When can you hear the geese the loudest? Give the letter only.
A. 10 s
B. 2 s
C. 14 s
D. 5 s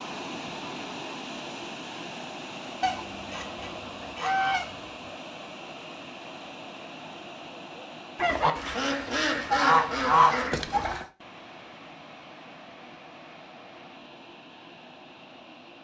A.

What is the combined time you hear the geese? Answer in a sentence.
You can hear the geese for 5 seconds altogether.